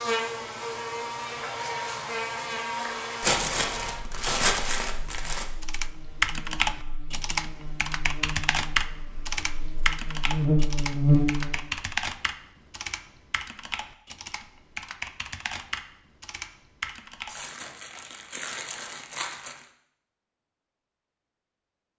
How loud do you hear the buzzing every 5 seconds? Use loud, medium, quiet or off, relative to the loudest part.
medium, quiet, loud, off, off.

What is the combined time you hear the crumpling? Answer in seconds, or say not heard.
5 s.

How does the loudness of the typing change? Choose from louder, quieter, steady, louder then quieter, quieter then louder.
quieter.